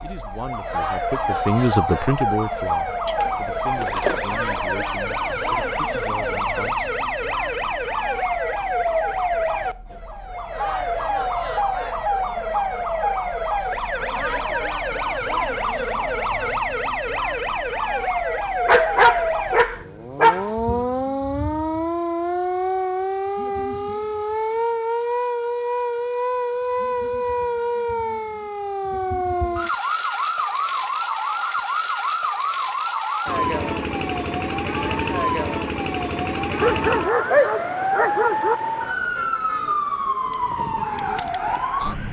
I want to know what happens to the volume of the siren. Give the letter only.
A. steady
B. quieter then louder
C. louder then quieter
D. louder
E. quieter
A.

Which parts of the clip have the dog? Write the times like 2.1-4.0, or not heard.
3.0-4.2, 18.6-20.6, 36.6-38.5.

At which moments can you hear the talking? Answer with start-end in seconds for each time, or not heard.
0.0-6.9.